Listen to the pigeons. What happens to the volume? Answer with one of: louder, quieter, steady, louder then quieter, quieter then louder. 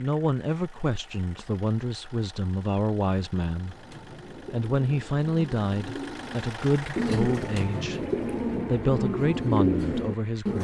louder.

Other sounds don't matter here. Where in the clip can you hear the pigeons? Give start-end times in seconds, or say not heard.
3.6-10.6.